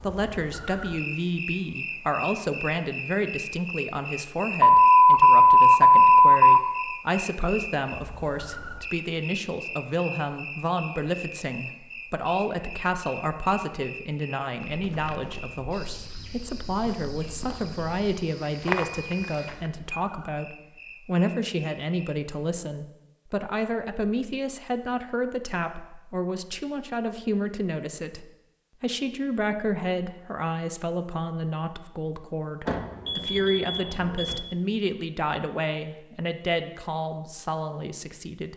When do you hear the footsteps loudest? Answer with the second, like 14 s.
19 s.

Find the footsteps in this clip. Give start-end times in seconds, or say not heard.
14.7-19.7.